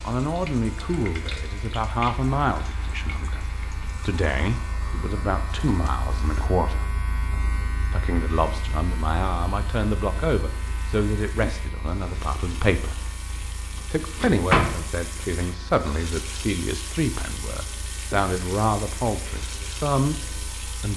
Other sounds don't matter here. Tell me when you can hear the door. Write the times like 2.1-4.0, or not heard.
14.2-14.8.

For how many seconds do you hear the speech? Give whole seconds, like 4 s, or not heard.
19 s.